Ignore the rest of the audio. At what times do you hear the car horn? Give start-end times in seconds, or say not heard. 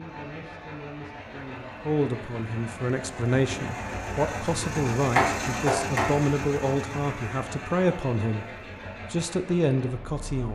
5.2-6.1.